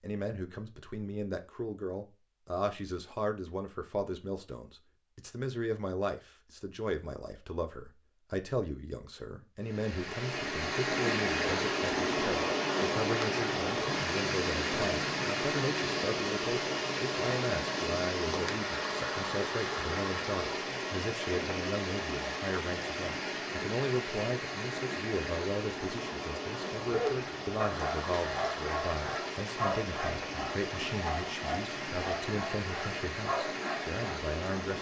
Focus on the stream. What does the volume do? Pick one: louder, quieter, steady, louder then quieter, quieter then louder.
quieter.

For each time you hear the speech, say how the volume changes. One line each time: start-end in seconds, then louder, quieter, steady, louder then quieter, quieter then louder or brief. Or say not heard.
0.0-34.7 steady.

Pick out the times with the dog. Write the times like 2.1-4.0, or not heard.
26.8-34.0.